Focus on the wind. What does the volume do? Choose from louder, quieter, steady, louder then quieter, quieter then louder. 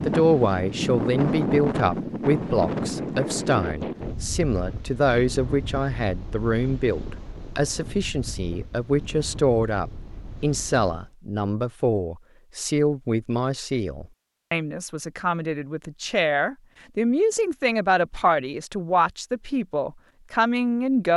quieter.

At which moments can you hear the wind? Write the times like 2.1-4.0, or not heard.
0.0-11.2.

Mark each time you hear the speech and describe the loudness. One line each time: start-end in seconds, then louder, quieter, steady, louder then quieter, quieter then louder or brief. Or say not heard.
0.1-21.1 steady.